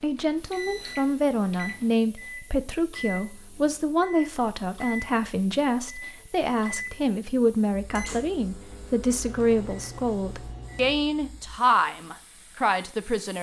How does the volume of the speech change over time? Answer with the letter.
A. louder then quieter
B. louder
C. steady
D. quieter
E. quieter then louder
C.